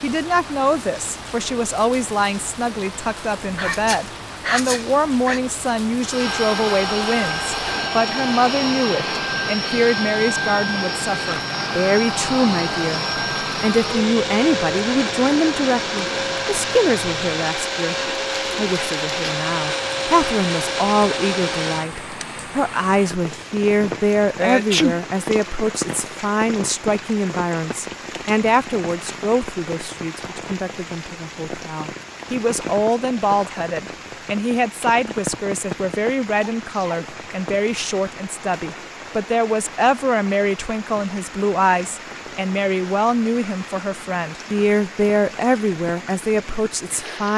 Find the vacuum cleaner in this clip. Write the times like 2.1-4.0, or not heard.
6.0-22.4.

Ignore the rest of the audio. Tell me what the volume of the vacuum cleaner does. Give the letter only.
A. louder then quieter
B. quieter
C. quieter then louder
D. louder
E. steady
E.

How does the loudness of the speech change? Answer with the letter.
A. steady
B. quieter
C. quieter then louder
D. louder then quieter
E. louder
A.